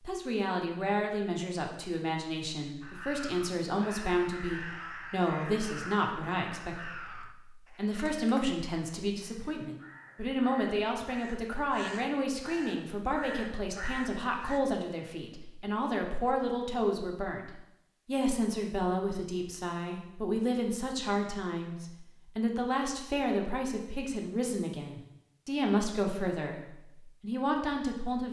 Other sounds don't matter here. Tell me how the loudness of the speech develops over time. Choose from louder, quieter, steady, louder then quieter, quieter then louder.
steady.